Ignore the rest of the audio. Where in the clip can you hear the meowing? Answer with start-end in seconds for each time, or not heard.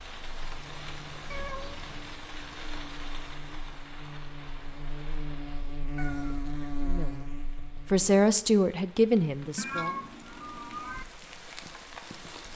1.3-1.9, 6.0-6.5, 9.6-11.1.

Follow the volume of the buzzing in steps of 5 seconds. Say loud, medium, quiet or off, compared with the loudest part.
medium, loud, off.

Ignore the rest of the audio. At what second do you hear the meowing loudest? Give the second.
10 s.